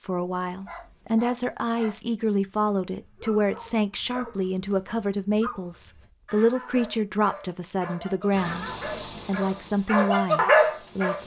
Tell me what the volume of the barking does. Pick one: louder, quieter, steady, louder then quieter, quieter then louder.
louder.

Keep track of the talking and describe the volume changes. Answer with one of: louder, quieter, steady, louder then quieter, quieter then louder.
steady.